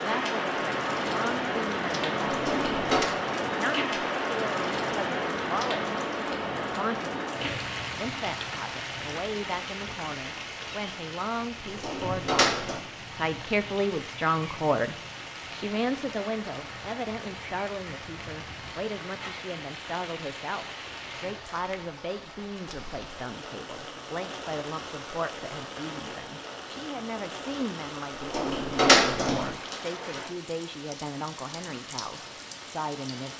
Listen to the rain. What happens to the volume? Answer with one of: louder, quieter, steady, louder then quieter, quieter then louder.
quieter.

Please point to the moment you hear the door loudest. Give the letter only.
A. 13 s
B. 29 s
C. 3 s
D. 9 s
B.